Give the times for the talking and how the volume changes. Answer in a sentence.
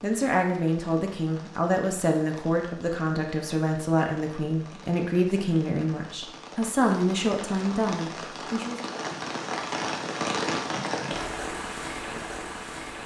The talking can be heard from 0.0 to 8.8 s, at a steady volume.